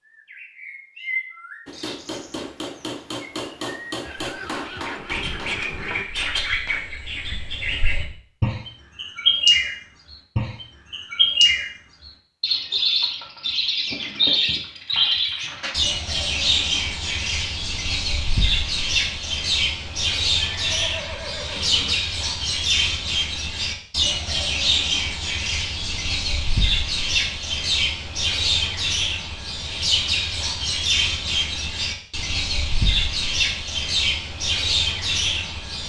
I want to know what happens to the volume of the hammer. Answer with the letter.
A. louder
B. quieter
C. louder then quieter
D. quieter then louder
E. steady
B.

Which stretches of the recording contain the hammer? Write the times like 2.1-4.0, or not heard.
1.6-7.0.